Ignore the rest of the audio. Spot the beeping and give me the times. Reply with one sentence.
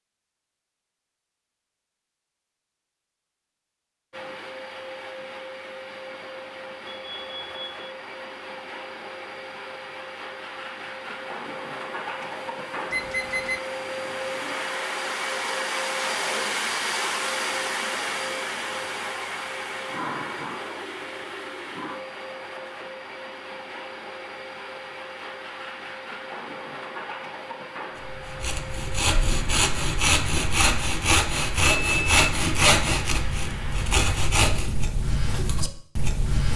The beeping can be heard from 6.8 to 8.0 s, from 12.9 to 13.6 s and from 31.6 to 32.2 s.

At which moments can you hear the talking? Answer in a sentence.
You can't hear the talking here.